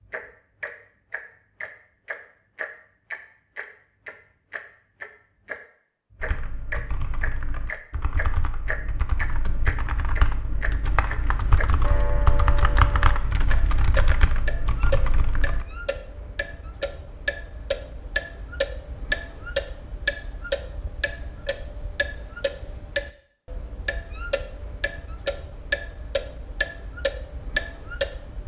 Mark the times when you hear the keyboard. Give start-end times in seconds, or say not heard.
6.2-15.7.